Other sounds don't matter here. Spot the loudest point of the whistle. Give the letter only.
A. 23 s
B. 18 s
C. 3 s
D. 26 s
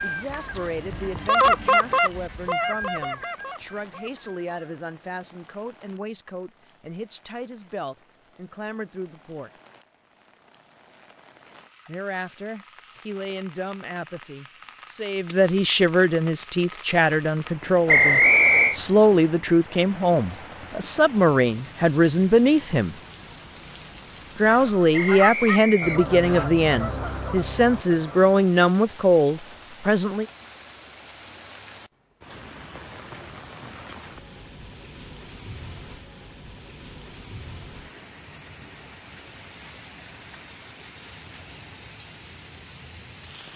B.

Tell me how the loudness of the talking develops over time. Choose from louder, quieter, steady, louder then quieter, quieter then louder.
louder.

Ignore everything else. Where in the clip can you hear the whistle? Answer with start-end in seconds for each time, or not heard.
17.9-18.8, 24.9-26.4.